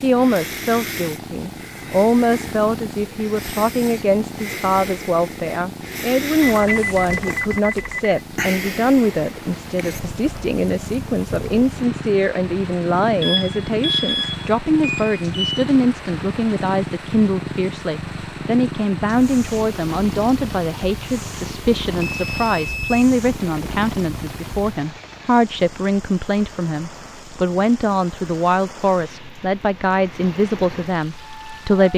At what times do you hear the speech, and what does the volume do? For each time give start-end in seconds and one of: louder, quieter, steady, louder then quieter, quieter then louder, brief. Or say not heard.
0.0-31.9 steady.